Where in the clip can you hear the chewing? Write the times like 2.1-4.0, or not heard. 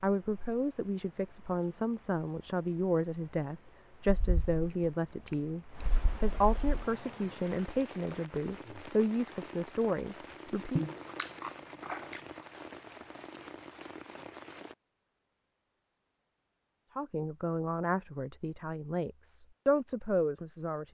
4.0-6.8, 10.8-12.2.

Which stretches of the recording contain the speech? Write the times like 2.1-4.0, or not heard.
0.0-10.8, 16.9-20.9.